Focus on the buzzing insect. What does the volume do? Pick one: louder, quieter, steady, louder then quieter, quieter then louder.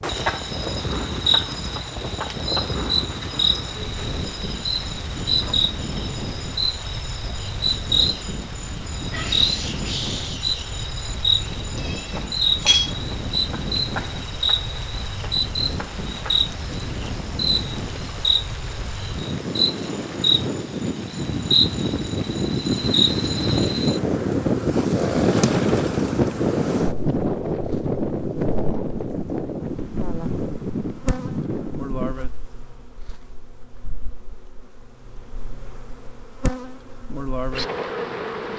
quieter.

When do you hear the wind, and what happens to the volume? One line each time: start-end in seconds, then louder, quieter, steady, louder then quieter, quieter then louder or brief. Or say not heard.
0.0-32.1 louder.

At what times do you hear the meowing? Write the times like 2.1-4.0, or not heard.
11.8-12.9.